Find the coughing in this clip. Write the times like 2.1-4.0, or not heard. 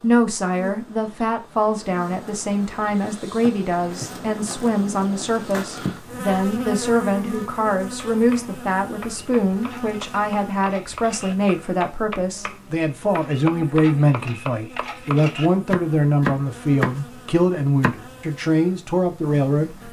not heard.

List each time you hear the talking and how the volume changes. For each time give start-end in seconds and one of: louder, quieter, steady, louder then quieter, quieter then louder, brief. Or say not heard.
0.0-19.8 steady.